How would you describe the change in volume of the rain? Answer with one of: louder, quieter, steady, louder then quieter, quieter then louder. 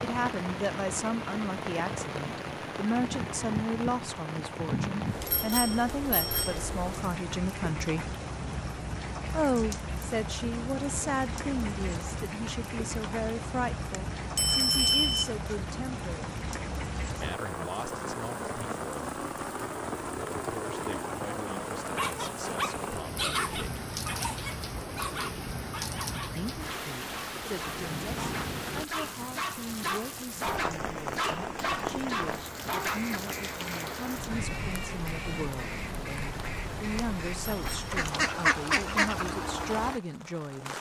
steady.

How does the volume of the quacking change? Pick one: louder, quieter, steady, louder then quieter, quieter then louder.
louder.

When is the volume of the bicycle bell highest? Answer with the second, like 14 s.
15 s.